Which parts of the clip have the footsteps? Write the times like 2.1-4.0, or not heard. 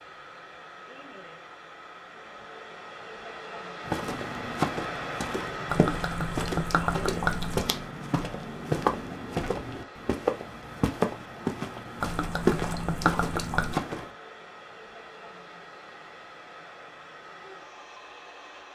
3.9-14.1.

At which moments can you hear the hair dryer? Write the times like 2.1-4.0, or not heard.
0.0-18.7.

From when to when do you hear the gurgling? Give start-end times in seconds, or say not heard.
5.7-7.7, 12.0-13.8.